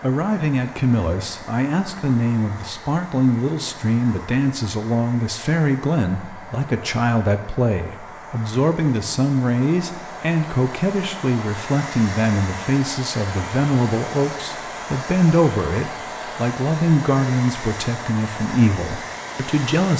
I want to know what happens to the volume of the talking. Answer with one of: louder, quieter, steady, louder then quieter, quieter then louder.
steady.